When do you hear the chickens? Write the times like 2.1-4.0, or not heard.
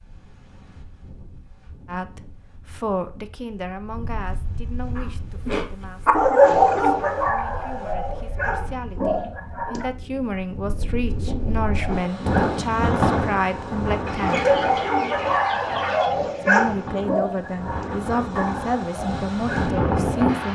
14.1-16.1.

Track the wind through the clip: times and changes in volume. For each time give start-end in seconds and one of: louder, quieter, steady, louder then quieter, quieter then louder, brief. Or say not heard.
0.0-20.5 louder.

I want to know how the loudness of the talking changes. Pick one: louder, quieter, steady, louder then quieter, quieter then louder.
quieter then louder.